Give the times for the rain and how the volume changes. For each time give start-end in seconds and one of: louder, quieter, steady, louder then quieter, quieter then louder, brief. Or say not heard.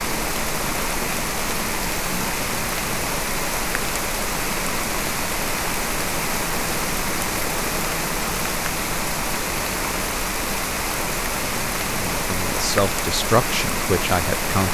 0.0-14.6 steady.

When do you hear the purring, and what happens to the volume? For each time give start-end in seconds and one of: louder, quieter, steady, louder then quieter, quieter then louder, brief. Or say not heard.
not heard.